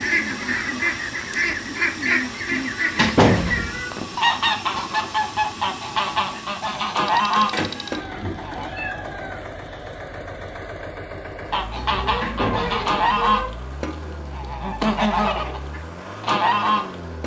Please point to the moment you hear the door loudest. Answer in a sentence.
The volume of the door peaks at 3 seconds.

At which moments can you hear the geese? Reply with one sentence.
The geese can be heard from 0.0 to 8.7 s and from 11.5 to 17.2 s.